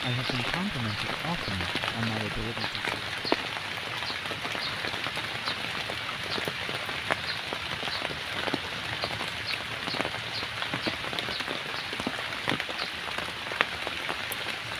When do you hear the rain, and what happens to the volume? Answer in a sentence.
The rain can be heard from 0.0 to 14.7 s, at a steady volume.